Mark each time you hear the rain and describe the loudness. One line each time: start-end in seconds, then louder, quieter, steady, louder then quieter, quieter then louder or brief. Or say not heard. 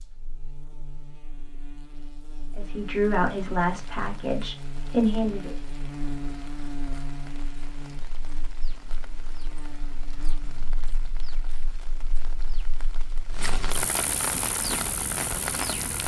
2.6-16.0 louder.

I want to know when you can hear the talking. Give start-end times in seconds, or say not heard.
2.5-5.5.